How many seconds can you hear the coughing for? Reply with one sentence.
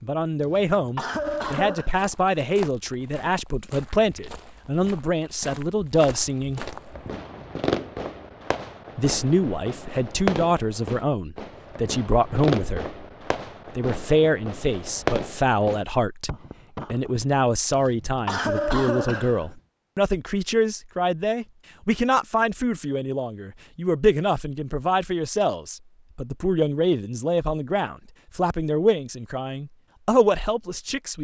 The coughing can be heard for 3 seconds in total.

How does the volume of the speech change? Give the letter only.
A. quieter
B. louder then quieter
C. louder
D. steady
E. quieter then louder
D.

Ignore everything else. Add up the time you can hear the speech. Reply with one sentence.
The speech can be heard for 28 seconds in total.